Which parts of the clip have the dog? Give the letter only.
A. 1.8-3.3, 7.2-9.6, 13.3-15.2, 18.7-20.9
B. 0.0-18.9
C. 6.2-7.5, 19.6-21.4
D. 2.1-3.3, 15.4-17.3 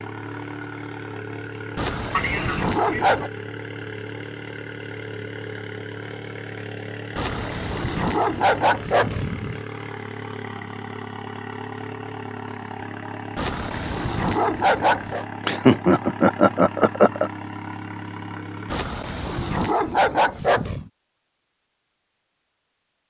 A.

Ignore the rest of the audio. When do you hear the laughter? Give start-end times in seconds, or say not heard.
2.1-3.3, 15.4-17.3.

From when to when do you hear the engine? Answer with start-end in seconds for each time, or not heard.
0.0-18.9.